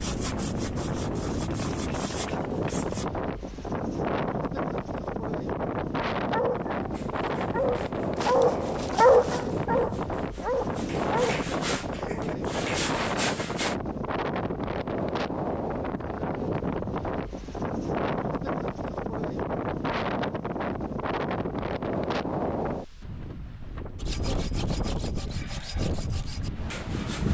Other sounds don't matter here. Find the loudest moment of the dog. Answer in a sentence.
The loudest moment of the dog is at 9 seconds.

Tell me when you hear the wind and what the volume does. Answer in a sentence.
You can hear the wind from 0.0 to 27.3 s, at a steady volume.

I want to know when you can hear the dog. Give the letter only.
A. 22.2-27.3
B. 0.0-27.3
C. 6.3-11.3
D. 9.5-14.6
C.